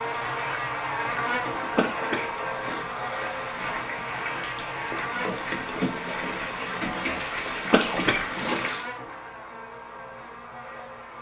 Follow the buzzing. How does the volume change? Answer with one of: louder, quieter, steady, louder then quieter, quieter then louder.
quieter.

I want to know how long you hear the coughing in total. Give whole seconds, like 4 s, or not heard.
2 s.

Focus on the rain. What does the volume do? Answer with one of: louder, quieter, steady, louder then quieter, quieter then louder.
louder.